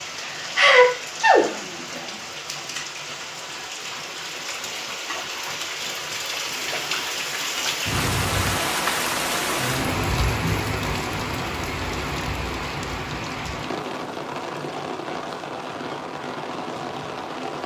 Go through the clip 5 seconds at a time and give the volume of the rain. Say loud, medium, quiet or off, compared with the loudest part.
medium, loud, loud, medium.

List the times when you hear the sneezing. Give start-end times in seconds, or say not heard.
0.2-1.4.